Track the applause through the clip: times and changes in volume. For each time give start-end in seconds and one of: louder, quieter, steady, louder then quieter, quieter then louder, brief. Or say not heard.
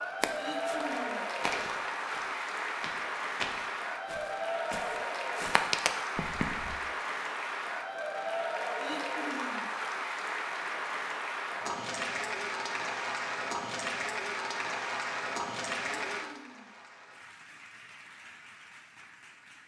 0.0-19.6 quieter.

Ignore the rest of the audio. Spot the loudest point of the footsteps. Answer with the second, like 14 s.
6 s.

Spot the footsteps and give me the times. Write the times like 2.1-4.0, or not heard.
0.2-6.8.